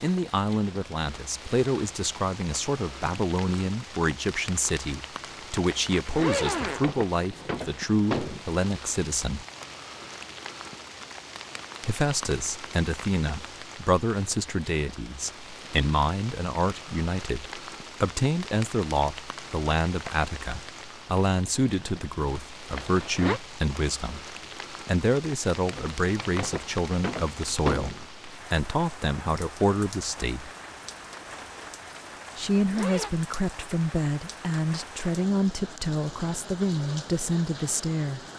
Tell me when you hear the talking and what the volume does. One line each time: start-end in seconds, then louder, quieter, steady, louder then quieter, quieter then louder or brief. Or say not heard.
0.0-9.4 steady
11.8-30.5 steady
32.4-38.2 steady.